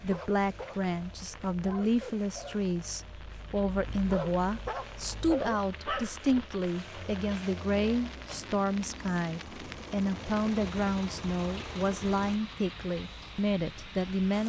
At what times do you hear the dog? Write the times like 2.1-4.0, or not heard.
0.0-6.2.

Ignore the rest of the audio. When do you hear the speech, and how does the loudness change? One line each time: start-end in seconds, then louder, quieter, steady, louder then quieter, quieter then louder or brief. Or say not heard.
0.0-14.4 steady.